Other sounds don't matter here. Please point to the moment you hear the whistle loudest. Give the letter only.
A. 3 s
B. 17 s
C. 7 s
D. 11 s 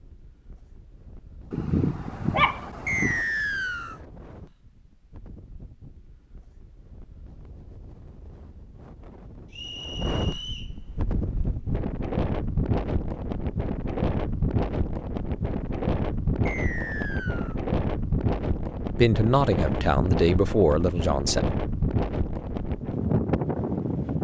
A.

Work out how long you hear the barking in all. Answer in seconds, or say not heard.
2 s.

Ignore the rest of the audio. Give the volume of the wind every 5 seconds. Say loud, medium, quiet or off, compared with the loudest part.
quiet, quiet, loud, loud, loud.